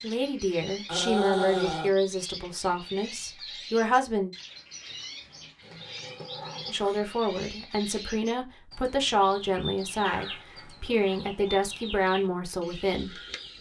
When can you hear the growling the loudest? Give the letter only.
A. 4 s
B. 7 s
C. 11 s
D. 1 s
D.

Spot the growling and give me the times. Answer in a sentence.
The growling can be heard from 0.7 to 1.9 s, from 5.6 to 7.0 s and from 9.9 to 11.4 s.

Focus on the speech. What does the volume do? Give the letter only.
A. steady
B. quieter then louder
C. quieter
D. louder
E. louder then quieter
A.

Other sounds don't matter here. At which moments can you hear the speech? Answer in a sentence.
You can hear the speech from 0.0 to 4.3 s and from 6.7 to 13.2 s.